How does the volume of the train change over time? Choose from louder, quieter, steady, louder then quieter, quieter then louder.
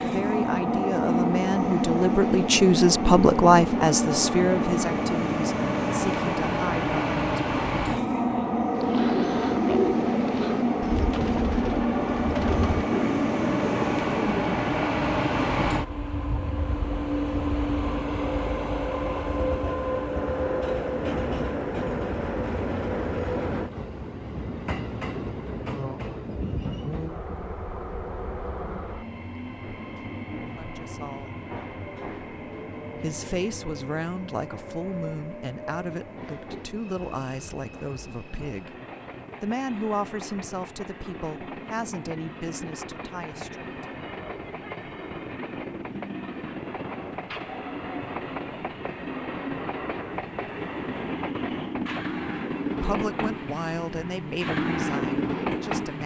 quieter then louder.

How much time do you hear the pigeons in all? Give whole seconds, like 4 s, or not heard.
6 s.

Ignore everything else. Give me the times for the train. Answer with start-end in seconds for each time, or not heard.
0.0-56.0.